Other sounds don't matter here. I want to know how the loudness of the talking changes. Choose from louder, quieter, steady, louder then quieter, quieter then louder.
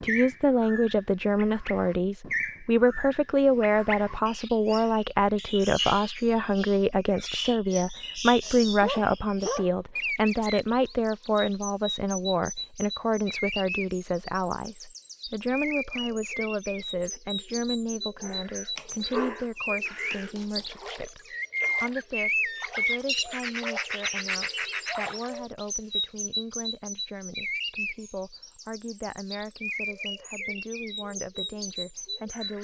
quieter.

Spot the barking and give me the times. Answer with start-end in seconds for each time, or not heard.
8.4-9.7, 18.2-19.4, 20.1-20.6.